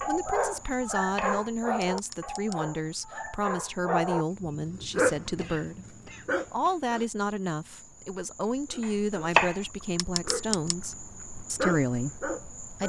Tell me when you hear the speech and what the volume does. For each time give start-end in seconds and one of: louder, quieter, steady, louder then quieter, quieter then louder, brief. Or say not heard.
0.1-12.8 steady.